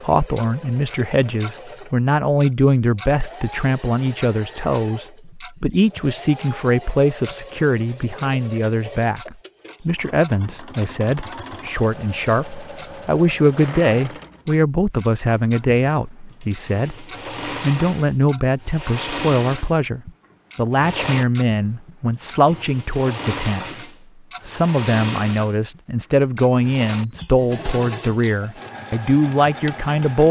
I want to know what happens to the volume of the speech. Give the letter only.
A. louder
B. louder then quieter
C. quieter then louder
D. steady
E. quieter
D.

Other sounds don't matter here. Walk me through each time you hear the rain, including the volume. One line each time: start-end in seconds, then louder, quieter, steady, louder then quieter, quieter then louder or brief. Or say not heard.
not heard.